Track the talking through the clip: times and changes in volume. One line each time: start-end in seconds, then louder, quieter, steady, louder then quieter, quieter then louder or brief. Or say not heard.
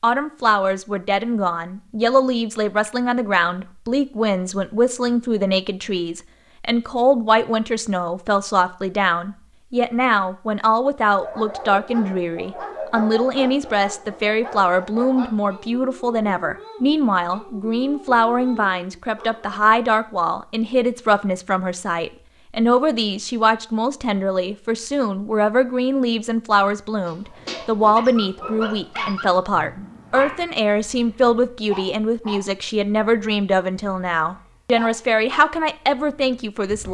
0.0-36.9 steady.